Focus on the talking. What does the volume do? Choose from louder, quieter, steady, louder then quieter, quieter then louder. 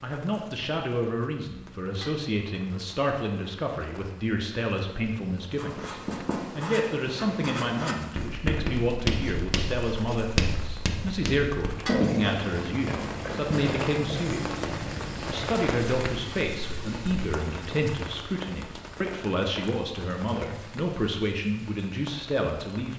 steady.